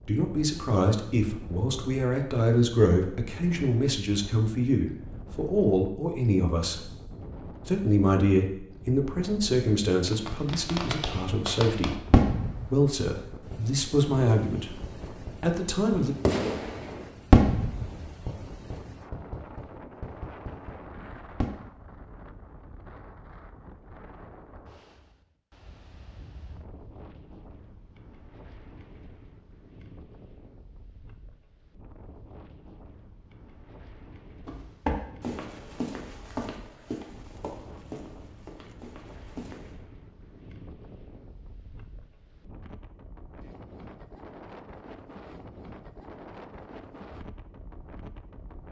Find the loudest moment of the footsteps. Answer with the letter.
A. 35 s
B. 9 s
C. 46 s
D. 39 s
A.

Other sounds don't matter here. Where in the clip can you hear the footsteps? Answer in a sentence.
You can hear the footsteps from 34.5 to 39.8 s.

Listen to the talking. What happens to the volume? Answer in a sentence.
The loudness of the talking stays about the same.